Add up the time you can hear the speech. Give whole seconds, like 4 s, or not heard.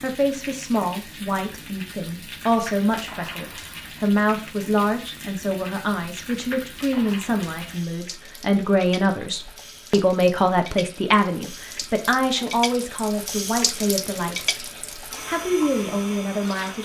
16 s.